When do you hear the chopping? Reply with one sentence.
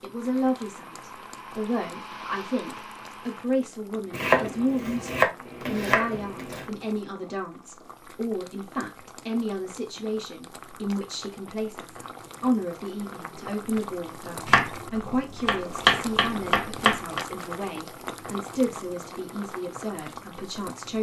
You can hear the chopping from 4.1 to 6.7 s and from 14.4 to 17.2 s.